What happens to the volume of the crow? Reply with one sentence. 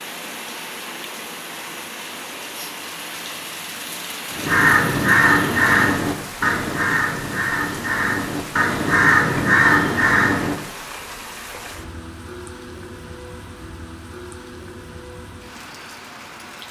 The volume of the crow goes down, then up.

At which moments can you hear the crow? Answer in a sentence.
The crow can be heard from 4.3 to 10.6 s.